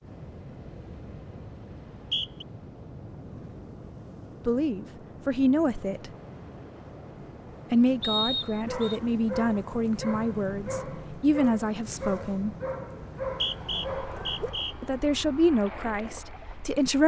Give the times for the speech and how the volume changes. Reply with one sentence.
The speech can be heard briefly from 4.5 to 6.1 s; from 7.7 to 12.6 s, at a steady volume; and briefly from 14.8 to 17.0 s.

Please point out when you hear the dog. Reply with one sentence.
The dog can be heard from 8.7 to 14.5 s.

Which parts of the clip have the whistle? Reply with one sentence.
The whistle can be heard from 1.8 to 2.5 s, from 8.0 to 9.0 s and from 13.2 to 14.8 s.